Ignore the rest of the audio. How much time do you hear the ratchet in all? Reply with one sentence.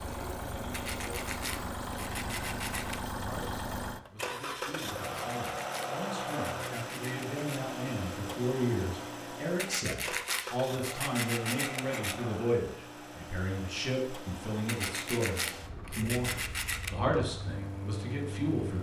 You can't hear the ratchet here.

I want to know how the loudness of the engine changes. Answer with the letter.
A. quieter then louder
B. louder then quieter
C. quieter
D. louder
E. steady
C.